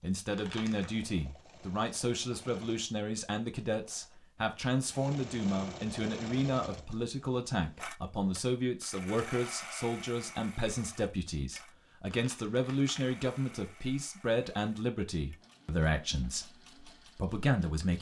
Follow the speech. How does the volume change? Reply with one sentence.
The loudness of the speech stays about the same.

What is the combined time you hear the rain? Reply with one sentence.
You can't hear the rain here.